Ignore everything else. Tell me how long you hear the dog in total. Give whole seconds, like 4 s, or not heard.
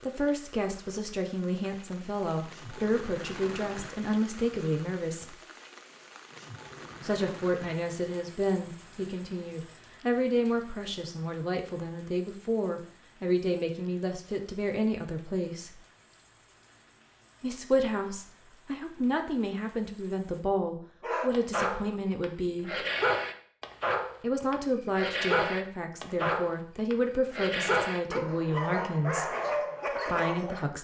10 s.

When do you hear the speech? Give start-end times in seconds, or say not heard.
0.0-5.4, 7.0-15.8, 17.4-22.9, 24.2-29.4, 30.1-30.7.